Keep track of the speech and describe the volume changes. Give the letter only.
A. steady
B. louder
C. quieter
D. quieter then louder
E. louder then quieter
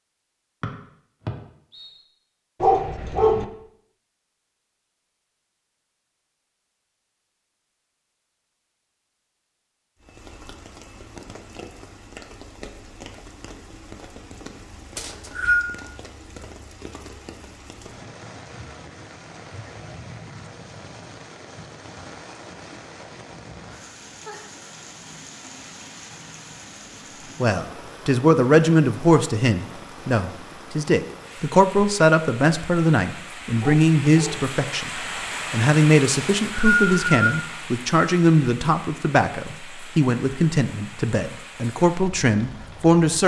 A.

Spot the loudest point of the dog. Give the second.
3 s.